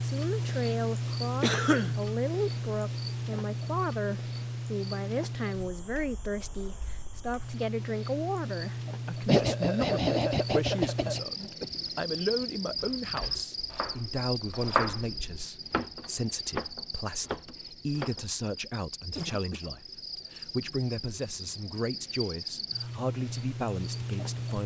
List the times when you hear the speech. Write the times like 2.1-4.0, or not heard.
0.0-24.6.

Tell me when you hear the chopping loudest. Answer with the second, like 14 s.
15 s.